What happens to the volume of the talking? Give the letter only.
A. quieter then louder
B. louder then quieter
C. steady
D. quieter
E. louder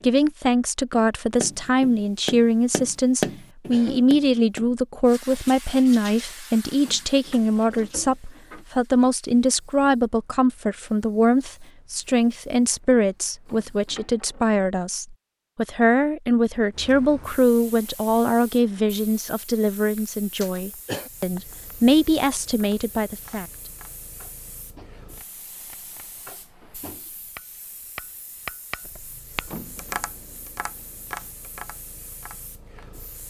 C.